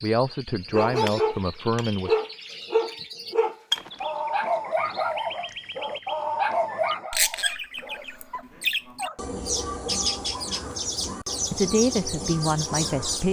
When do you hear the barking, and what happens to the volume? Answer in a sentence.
The barking can be heard from 0.7 to 9.2 s, getting quieter.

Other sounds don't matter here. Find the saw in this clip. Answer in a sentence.
You can't hear the saw here.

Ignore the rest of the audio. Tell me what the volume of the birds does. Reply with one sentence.
The loudness of the birds goes up.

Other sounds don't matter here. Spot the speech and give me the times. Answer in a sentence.
You can hear the speech from 0.0 to 2.1 s and from 11.5 to 13.2 s.